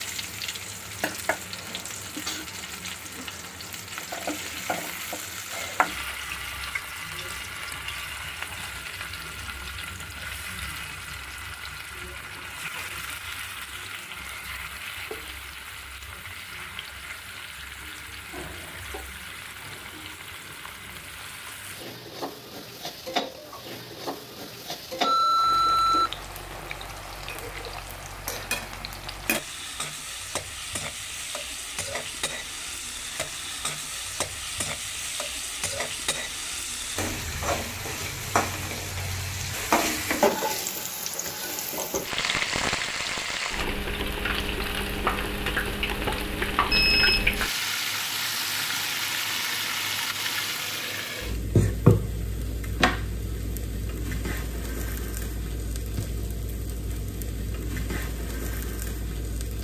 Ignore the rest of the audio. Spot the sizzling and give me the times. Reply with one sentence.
You can hear the sizzling from 0.0 to 59.5 s.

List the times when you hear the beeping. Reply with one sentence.
The beeping can be heard from 25.0 to 26.1 s and from 46.7 to 47.5 s.